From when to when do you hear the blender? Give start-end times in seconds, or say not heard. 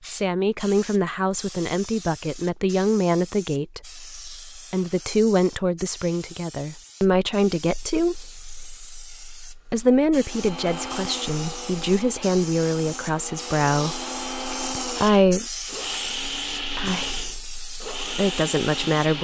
10.2-19.1.